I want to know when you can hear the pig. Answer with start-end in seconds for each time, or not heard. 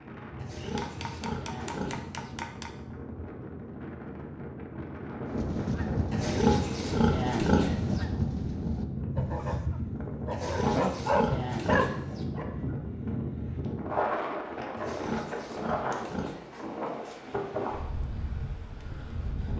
0.3-2.4, 6.1-8.1, 10.3-12.2, 14.8-16.4.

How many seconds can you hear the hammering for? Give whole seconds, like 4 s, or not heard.
2 s.